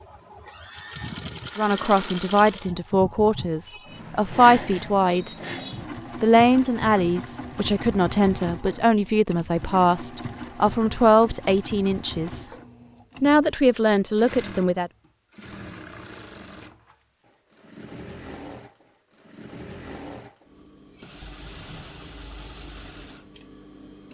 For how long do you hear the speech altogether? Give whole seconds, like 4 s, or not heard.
12 s.